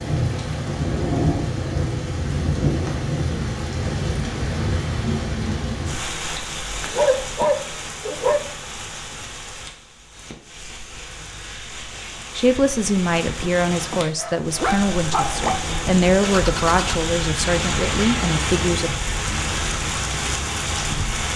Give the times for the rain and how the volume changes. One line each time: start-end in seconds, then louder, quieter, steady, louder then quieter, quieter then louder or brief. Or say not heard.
0.0-21.3 quieter then louder.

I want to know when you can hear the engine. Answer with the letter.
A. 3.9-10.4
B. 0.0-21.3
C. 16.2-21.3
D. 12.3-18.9
C.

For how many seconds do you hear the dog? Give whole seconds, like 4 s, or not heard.
3 s.